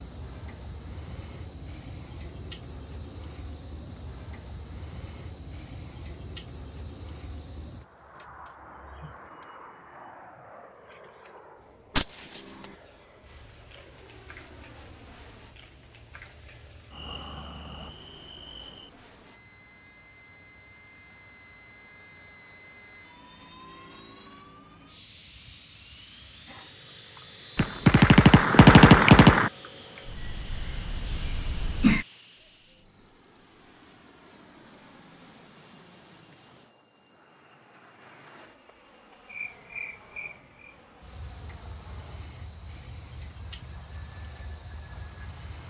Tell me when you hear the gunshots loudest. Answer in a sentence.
The volume of the gunshots peaks at 29 seconds.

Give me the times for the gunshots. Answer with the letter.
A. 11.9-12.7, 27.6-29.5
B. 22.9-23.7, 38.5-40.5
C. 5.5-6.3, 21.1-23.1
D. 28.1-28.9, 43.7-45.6
A.